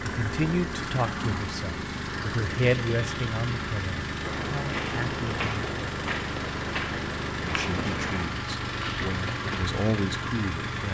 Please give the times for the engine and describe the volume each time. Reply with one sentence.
The engine can be heard from 0.0 to 10.8 s, at a steady volume.